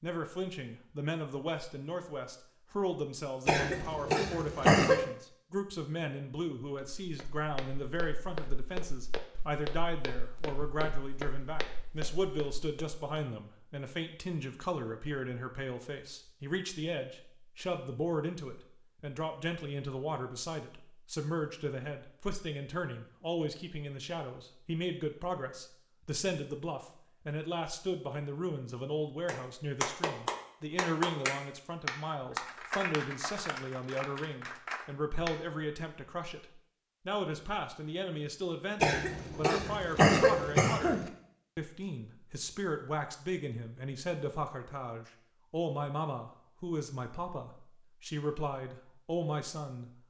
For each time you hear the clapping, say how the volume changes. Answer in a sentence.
You can hear the clapping from 29.2 to 35.4 s, getting quieter.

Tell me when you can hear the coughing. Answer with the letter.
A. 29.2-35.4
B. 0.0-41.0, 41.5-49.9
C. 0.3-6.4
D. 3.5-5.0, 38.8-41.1
D.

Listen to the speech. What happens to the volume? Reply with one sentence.
The volume of the speech stays about the same.